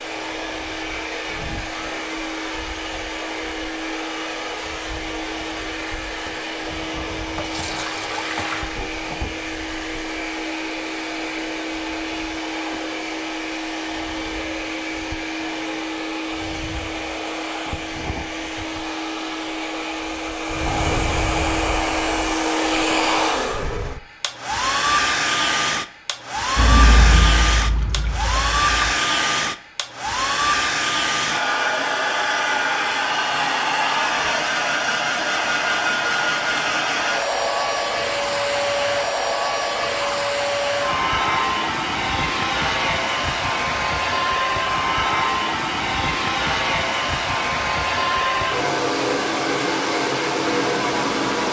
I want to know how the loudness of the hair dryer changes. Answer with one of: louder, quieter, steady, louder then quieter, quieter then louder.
louder.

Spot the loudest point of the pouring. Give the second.
27 s.